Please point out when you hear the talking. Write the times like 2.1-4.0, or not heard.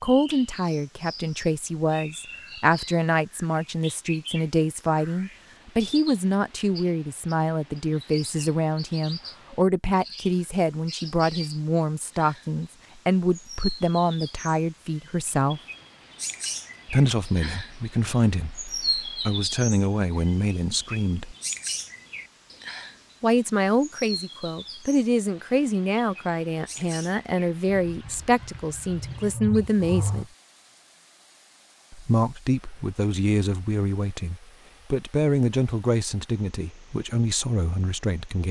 0.0-15.6, 16.9-21.4, 23.2-30.2, 31.9-38.4.